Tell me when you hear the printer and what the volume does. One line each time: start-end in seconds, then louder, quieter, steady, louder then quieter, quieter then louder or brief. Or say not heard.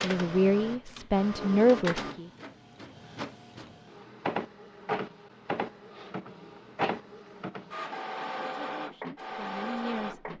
0.0-10.3 quieter then louder.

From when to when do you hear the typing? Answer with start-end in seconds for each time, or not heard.
not heard.